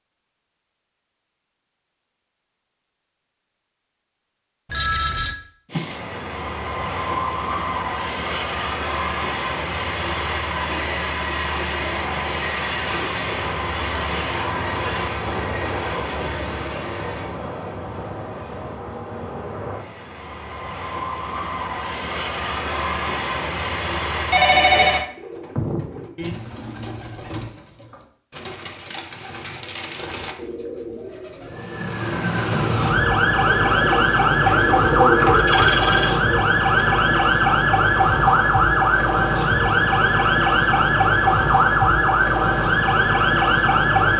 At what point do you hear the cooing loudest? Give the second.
35 s.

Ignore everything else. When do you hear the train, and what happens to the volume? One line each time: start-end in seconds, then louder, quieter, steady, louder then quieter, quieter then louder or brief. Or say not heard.
5.7-25.1 quieter then louder.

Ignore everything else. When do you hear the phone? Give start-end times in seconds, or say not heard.
4.7-5.3, 24.3-25.1, 35.3-36.2.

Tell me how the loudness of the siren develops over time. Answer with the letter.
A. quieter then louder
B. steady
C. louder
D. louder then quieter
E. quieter
B.